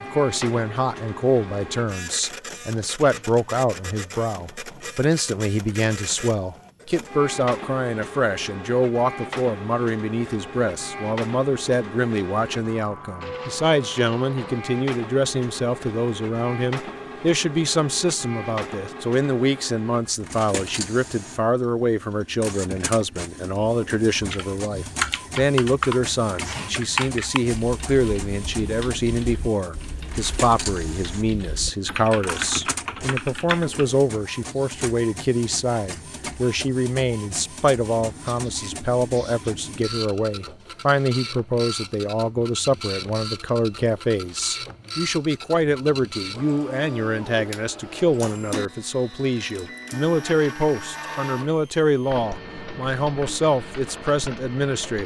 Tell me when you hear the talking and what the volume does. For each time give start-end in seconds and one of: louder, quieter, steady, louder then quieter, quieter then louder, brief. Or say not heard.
0.0-55.0 steady.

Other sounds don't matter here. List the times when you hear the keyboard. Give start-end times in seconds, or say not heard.
24.1-33.9.